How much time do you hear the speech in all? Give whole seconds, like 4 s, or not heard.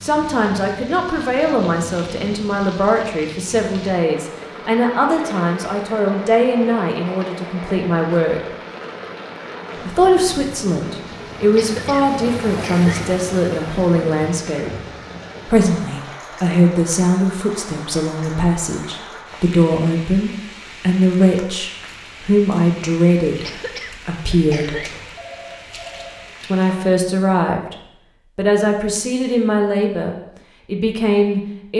28 s.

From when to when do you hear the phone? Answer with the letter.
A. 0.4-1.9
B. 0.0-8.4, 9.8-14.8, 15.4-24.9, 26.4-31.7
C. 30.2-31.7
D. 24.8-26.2
D.